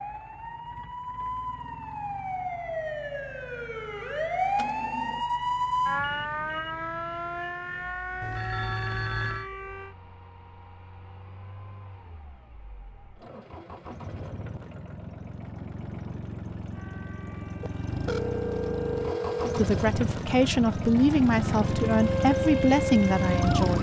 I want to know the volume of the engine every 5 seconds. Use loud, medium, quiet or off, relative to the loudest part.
quiet, quiet, quiet, medium, loud.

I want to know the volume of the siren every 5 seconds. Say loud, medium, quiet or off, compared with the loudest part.
loud, loud, off, quiet, loud.